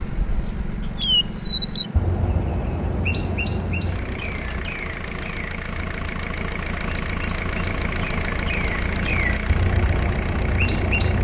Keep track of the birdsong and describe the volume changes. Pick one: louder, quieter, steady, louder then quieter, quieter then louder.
quieter then louder.